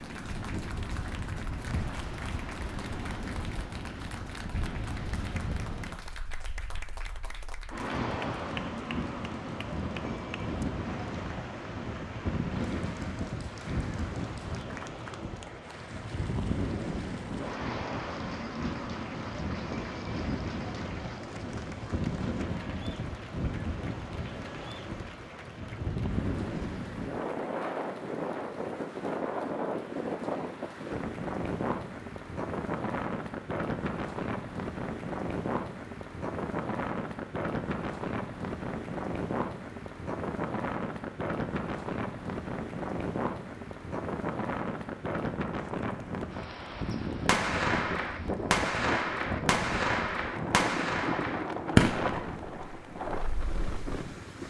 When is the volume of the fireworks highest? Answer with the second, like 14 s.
52 s.